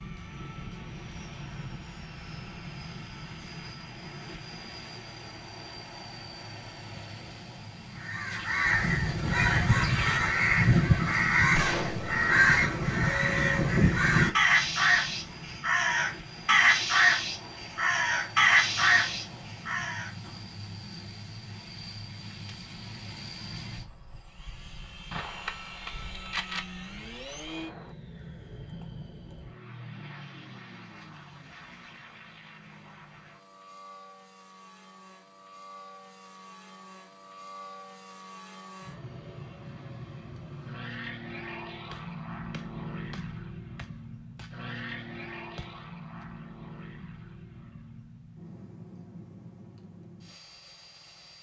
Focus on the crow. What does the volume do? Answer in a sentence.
The loudness of the crow stays about the same.